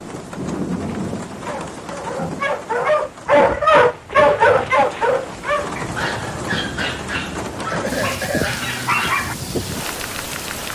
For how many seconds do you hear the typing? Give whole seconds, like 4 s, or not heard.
not heard.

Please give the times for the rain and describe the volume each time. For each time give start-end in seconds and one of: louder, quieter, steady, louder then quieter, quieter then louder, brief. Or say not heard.
0.0-10.7 quieter then louder.